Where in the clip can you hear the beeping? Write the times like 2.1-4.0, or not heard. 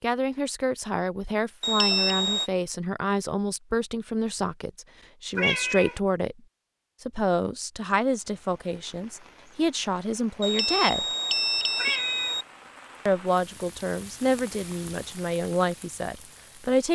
1.6-2.5, 10.4-12.4.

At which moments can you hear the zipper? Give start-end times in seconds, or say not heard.
not heard.